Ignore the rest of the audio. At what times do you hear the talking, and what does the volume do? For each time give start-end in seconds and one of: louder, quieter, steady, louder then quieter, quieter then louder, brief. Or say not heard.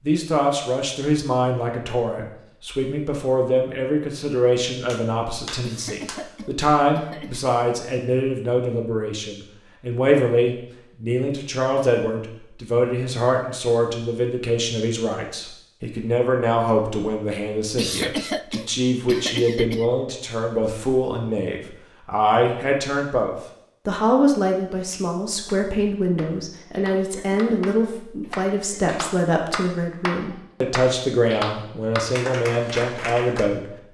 0.0-33.7 steady.